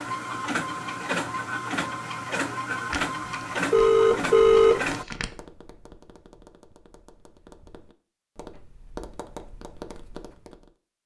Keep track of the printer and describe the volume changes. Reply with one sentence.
The volume of the printer stays about the same.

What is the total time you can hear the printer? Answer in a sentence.
The printer can be heard for 5 seconds in total.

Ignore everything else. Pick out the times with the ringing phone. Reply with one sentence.
You can hear the ringing phone from 2.9 to 5.2 s.